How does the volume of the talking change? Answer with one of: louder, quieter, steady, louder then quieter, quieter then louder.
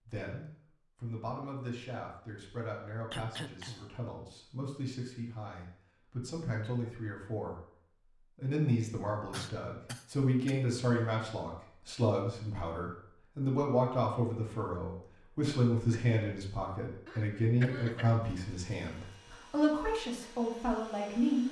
louder.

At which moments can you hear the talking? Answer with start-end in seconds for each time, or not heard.
0.0-21.4.